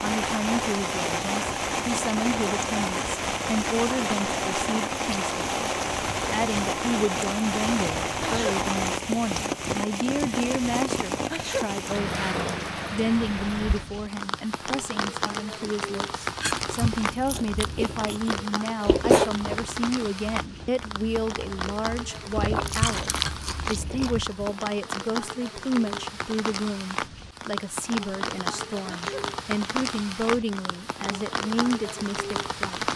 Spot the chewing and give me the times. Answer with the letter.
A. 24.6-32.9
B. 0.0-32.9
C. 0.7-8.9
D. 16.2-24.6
D.